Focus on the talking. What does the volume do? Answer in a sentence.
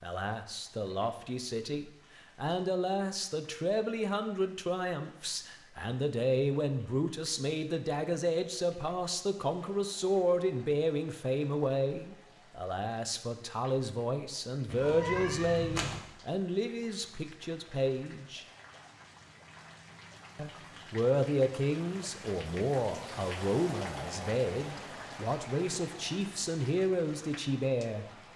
The volume of the talking stays about the same.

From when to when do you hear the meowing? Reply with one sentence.
You can hear the meowing from 14.7 to 16.0 s.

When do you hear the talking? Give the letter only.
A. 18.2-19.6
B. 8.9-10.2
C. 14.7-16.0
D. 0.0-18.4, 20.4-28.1
D.